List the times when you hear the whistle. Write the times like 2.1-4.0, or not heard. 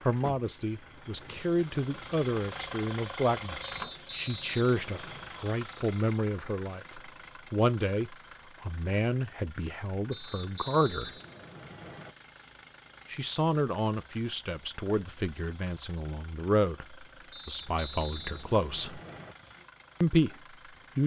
3.7-5.4, 10.1-12.1, 17.3-19.4.